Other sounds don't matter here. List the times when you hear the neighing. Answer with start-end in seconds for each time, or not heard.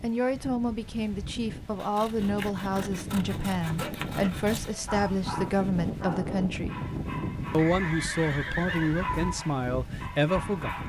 7.5-9.2.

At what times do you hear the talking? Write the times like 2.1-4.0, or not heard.
0.0-6.8, 7.5-10.8.